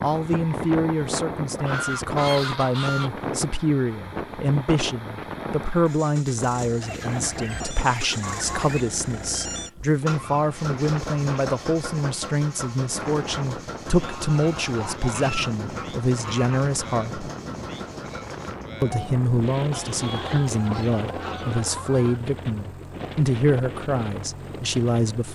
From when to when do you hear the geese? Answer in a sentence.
The geese can be heard from 1.6 to 3.1 s, from 6.8 to 8.8 s, from 14.0 to 16.6 s and from 19.7 to 22.2 s.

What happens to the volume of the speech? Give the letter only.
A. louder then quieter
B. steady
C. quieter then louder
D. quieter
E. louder
B.